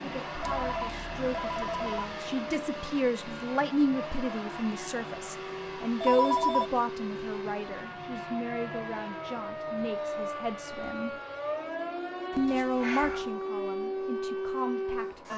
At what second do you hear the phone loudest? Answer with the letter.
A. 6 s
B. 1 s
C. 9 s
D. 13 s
A.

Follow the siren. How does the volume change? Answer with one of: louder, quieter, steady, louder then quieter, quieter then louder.
louder.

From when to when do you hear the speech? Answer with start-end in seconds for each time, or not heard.
0.0-11.2, 12.3-15.3.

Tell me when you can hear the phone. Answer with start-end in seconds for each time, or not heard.
0.4-2.1, 6.0-6.7, 12.3-13.3.